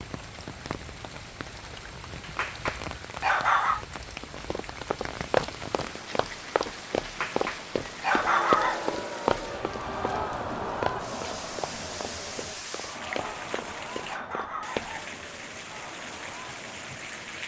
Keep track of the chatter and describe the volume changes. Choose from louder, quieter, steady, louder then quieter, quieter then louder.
quieter.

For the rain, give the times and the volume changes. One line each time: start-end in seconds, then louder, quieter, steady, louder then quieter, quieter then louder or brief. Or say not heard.
0.0-17.4 steady.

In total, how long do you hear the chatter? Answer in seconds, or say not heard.
9 s.